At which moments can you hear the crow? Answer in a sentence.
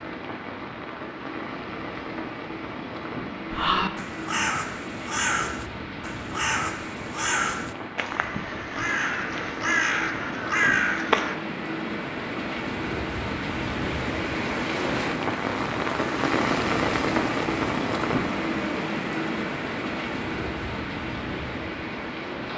The crow can be heard from 3.5 to 11.3 s.